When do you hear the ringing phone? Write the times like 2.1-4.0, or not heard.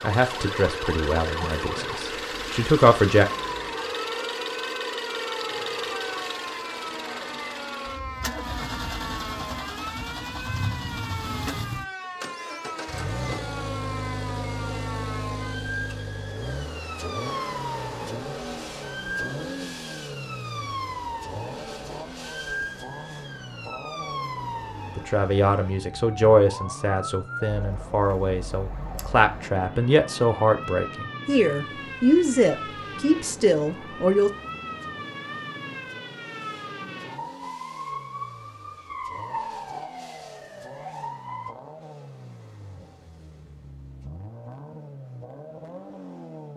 not heard.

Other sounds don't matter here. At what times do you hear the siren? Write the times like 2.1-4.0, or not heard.
0.1-41.5.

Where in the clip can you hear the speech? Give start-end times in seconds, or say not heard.
0.0-3.2, 24.9-34.3.